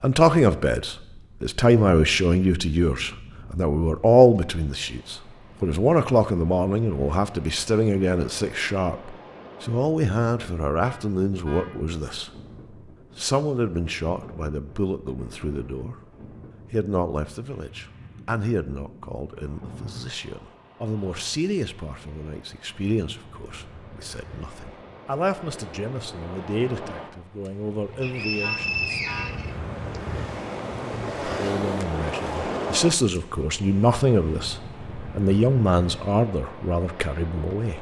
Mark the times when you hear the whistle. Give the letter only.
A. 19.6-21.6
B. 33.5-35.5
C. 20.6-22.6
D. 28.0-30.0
D.